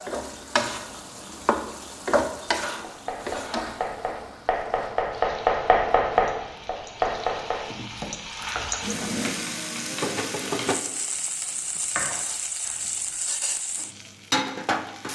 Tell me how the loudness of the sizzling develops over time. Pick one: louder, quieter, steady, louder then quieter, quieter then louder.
quieter then louder.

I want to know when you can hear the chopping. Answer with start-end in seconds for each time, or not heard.
2.8-13.2.